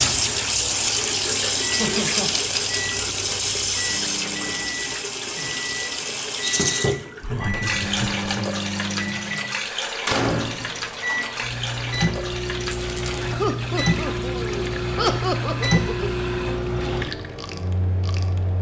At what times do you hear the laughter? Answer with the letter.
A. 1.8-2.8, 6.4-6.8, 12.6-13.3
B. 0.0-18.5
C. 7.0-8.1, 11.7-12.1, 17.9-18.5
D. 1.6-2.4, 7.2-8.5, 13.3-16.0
D.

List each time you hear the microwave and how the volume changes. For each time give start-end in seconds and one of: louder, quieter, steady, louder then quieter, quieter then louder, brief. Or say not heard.
0.0-18.5 louder.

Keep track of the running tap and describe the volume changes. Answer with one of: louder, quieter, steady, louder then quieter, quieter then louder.
quieter.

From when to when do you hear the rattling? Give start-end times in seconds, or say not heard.
1.8-2.8, 6.4-6.8, 12.6-13.3.